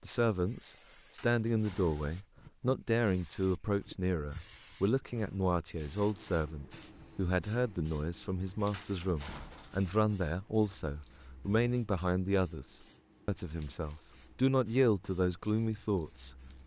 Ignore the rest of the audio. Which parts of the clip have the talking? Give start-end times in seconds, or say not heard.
0.0-16.4.